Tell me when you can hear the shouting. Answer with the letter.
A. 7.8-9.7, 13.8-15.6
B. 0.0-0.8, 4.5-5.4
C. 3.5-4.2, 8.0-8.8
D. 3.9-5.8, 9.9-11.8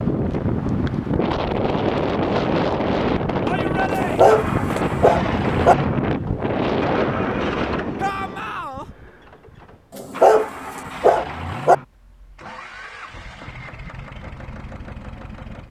C.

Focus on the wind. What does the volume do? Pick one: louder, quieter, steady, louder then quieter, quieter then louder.
steady.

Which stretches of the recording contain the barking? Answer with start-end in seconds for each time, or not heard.
3.9-5.8, 9.9-11.8.